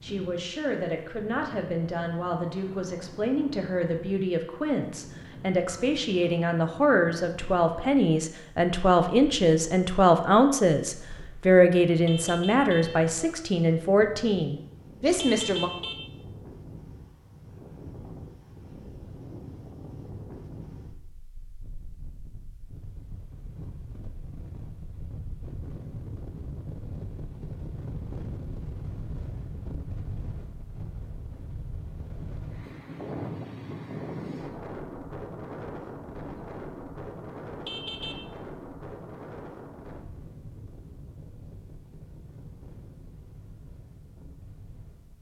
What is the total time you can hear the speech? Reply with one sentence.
The speech can be heard for 16 seconds in total.